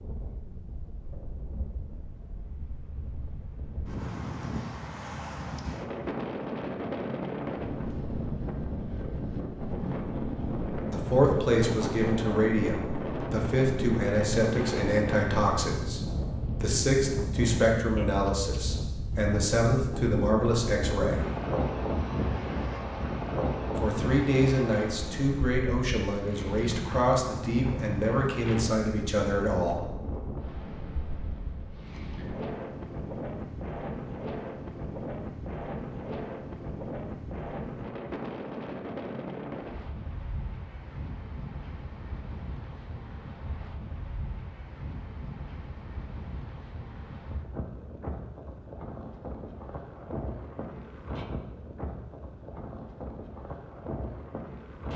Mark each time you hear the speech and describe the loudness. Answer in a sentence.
The speech can be heard from 10.9 to 21.4 s, at a steady volume; and from 23.8 to 29.8 s, at a steady volume.